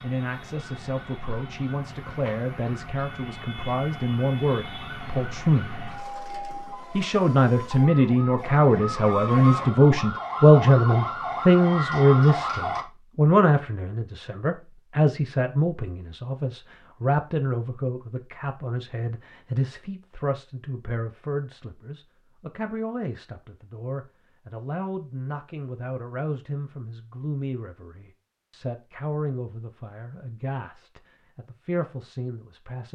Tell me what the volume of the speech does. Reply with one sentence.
The loudness of the speech goes up, then down.